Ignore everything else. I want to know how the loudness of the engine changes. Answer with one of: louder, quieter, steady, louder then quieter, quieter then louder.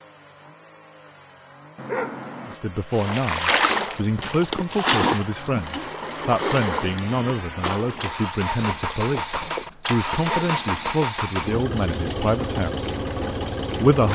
louder.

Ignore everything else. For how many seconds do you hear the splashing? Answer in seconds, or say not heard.
7 s.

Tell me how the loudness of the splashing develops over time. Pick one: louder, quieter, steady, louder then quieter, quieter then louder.
quieter.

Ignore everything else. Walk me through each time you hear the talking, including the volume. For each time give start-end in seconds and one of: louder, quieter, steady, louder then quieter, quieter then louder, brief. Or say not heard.
2.5-13.0 steady
13.6-14.1 brief.